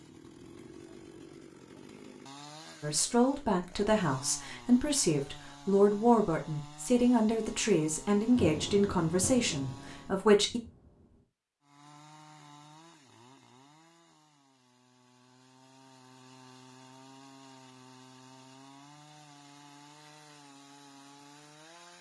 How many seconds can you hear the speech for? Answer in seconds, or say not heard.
8 s.